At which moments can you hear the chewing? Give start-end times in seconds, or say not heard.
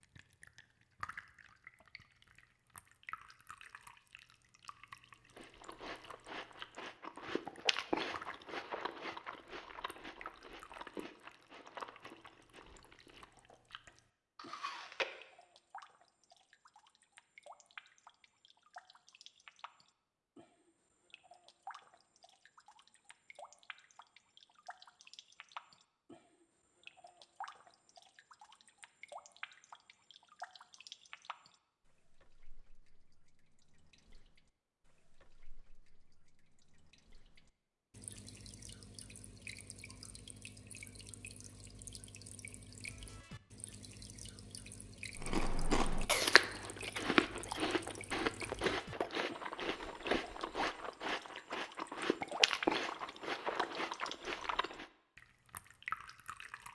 5.3-15.1, 45.1-54.9.